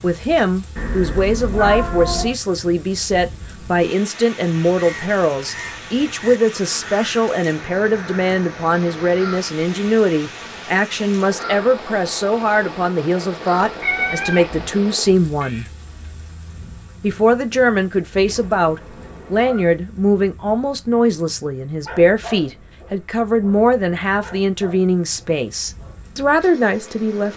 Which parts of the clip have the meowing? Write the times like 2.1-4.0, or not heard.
0.8-2.4, 13.6-14.7, 18.2-19.6.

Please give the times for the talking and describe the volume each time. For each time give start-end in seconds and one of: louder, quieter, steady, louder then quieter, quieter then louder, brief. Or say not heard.
0.0-15.7 steady
17.0-27.3 steady.